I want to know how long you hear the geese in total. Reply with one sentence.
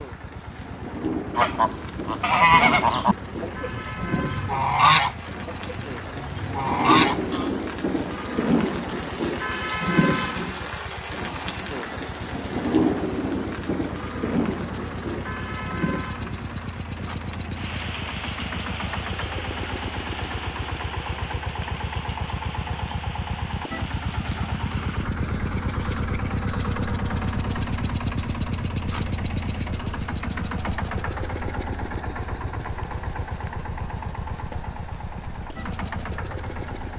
You can hear the geese for 6 seconds altogether.